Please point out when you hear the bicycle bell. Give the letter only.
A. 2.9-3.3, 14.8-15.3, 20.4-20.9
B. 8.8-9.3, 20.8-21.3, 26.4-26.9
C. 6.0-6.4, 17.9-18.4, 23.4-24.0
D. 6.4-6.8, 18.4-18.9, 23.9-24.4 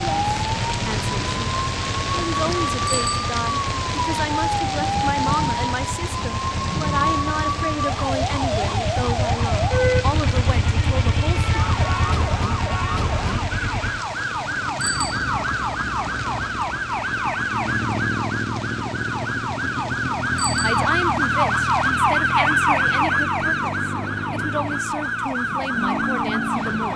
A.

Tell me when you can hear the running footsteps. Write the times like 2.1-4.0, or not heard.
not heard.